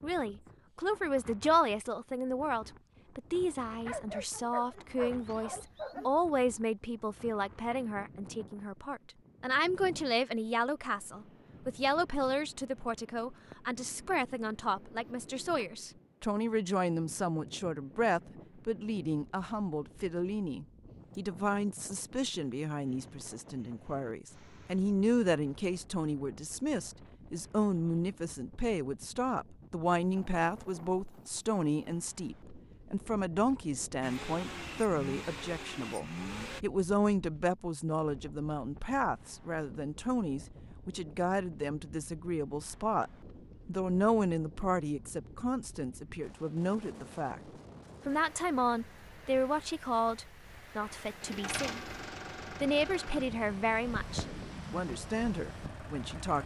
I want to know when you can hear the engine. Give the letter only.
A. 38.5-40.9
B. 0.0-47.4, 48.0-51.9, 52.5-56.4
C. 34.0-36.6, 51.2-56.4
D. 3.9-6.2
C.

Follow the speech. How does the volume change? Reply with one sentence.
The loudness of the speech stays about the same.